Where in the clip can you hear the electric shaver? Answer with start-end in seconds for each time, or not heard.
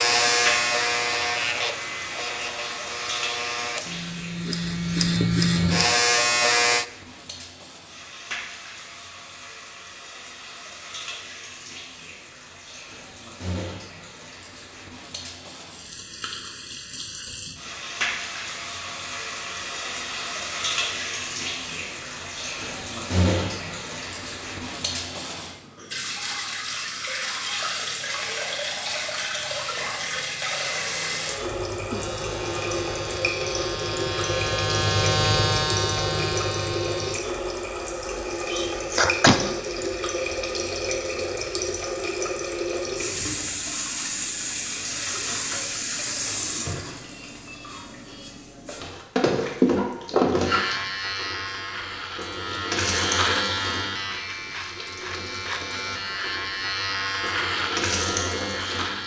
0.0-6.8, 31.4-37.2, 50.5-59.0.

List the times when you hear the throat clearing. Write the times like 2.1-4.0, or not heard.
38.5-39.4.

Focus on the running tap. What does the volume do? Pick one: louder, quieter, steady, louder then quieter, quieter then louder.
louder.